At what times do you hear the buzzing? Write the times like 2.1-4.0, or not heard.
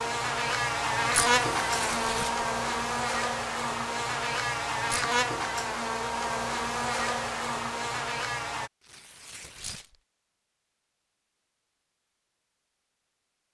0.0-8.7.